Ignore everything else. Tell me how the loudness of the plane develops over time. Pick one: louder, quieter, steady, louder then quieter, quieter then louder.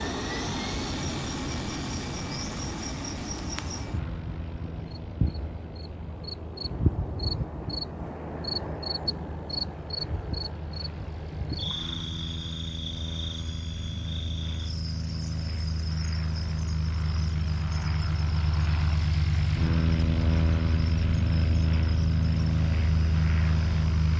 quieter then louder.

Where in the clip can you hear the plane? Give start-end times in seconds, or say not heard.
0.0-24.1.